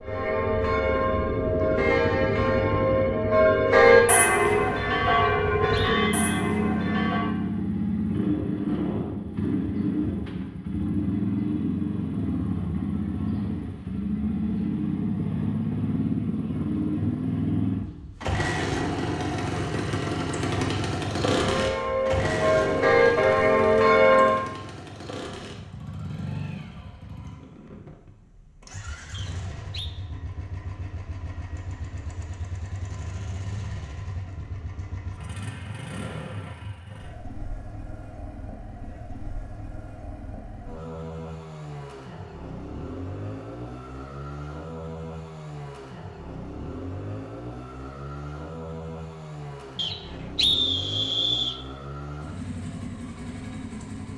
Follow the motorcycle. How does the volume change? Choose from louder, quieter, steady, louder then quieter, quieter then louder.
quieter.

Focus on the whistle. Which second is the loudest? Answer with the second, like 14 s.
51 s.